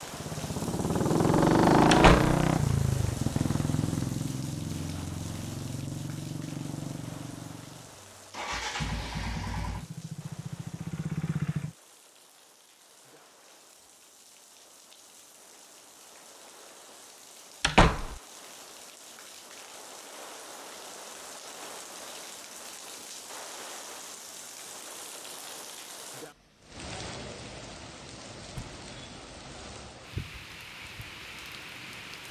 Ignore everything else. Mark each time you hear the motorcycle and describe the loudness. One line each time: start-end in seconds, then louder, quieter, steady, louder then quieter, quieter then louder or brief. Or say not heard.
0.0-11.8 quieter.